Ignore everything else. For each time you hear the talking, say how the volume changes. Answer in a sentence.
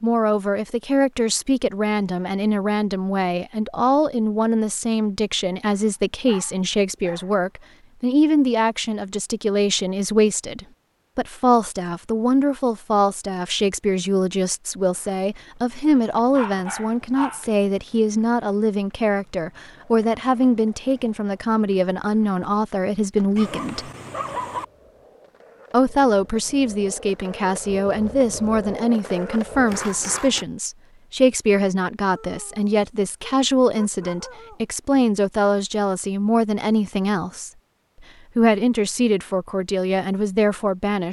The talking can be heard from 0.0 to 23.9 s, at a steady volume; from 25.7 to 37.5 s, at a steady volume; and briefly from 38.4 to 41.0 s.